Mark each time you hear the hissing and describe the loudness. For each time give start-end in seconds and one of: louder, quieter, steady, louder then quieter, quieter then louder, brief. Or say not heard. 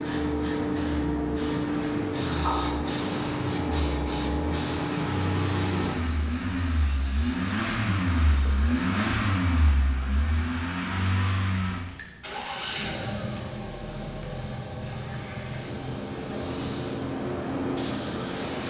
0.0-9.2 quieter
11.3-18.6 louder.